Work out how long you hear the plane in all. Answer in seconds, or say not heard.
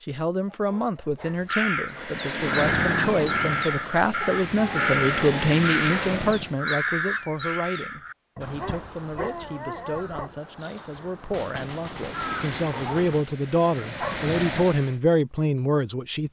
8 s.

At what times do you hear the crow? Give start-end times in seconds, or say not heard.
1.2-13.2.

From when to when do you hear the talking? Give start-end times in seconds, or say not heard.
0.0-16.2.